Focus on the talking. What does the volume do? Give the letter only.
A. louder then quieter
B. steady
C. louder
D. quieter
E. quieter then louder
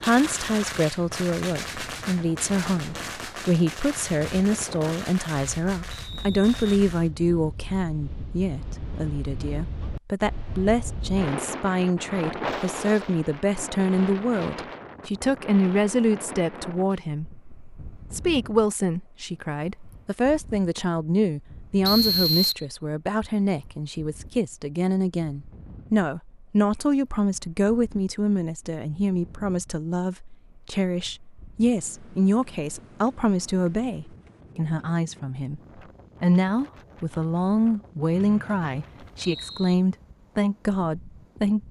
B.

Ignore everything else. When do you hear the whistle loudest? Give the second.
22 s.